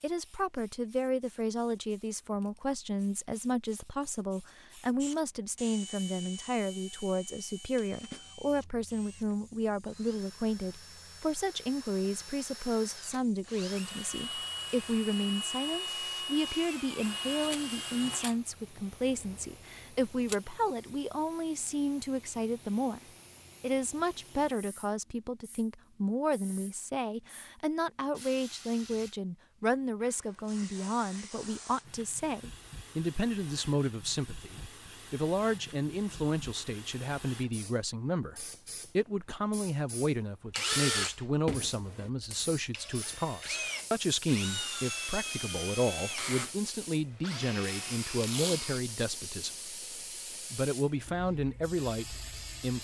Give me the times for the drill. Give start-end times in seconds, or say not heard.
5.0-20.4, 40.5-48.8.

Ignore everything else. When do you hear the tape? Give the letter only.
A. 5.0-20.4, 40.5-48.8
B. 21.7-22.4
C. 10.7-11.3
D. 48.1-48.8
D.